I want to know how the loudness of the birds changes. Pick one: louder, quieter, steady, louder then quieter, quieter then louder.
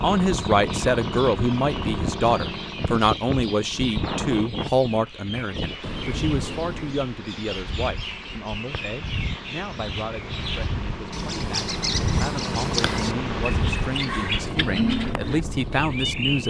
louder.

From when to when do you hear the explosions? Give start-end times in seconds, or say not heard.
5.8-7.1.